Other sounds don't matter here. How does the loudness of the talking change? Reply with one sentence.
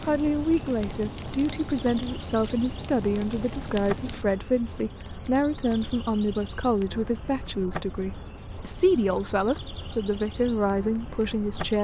The volume of the talking stays about the same.